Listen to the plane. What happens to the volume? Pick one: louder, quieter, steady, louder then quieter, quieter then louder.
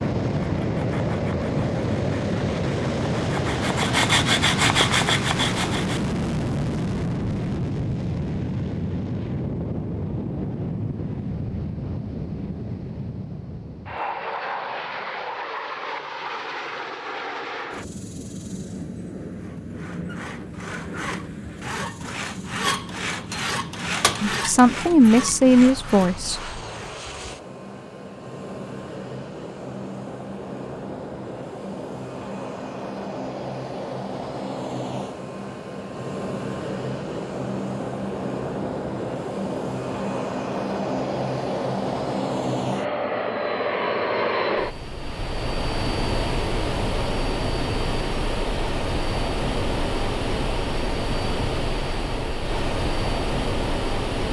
quieter then louder.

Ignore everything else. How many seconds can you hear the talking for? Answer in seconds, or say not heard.
2 s.